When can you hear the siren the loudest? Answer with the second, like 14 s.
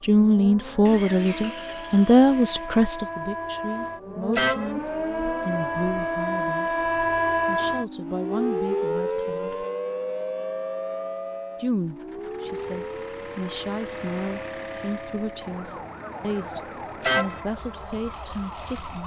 7 s.